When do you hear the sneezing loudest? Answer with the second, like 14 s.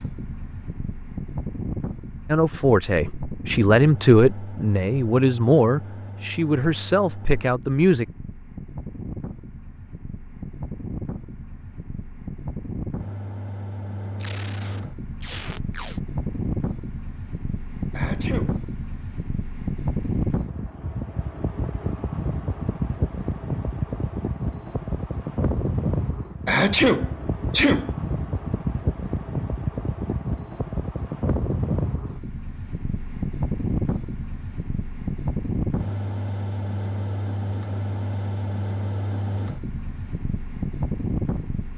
27 s.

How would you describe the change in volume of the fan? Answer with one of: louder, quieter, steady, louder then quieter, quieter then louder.
louder.